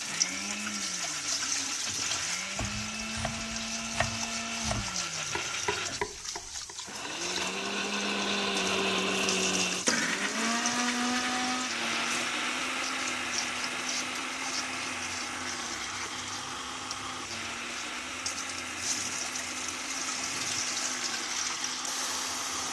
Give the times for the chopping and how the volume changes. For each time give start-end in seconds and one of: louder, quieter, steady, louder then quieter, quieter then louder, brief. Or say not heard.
2.5-7.5 louder then quieter.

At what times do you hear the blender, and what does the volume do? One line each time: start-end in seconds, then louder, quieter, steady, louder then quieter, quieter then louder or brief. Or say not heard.
0.0-22.6 louder then quieter.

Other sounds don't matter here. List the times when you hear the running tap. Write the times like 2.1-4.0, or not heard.
0.0-22.6.